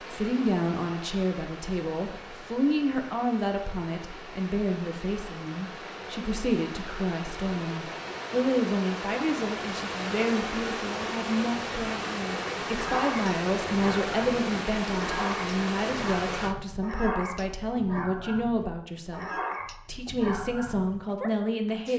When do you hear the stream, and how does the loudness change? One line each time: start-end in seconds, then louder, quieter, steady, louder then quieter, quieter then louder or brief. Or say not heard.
0.0-16.6 louder.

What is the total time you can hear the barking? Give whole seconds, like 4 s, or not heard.
9 s.